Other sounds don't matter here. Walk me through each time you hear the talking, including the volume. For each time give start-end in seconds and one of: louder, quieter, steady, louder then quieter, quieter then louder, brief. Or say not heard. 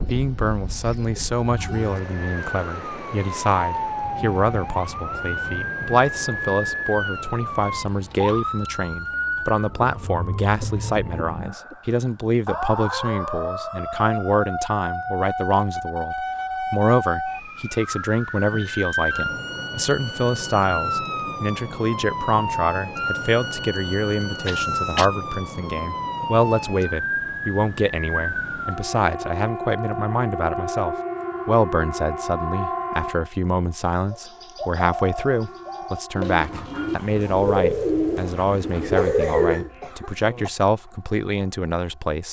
0.1-42.2 steady.